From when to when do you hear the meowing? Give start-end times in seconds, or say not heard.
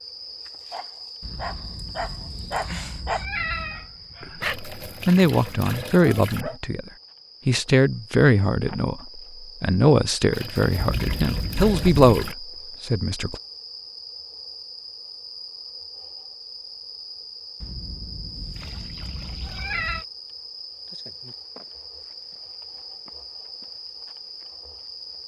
1.2-3.9, 10.8-12.1, 17.6-20.1.